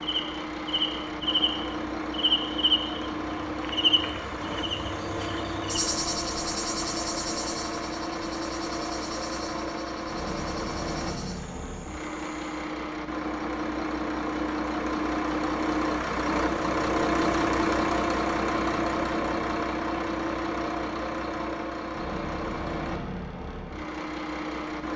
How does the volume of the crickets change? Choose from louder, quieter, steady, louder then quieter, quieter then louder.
quieter.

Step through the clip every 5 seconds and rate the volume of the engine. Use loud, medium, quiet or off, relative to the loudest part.
medium, medium, medium, loud, medium.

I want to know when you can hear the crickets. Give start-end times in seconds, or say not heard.
0.0-12.6.